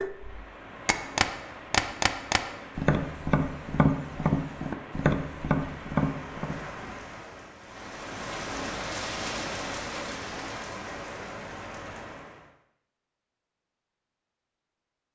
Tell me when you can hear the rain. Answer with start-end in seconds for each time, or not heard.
0.0-12.5.